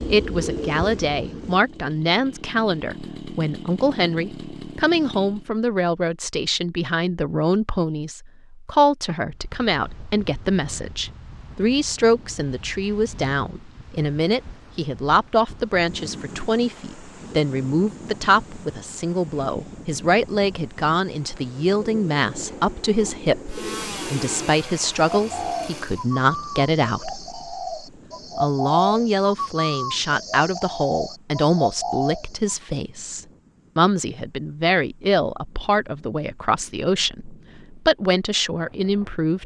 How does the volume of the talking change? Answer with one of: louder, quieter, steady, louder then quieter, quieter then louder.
steady.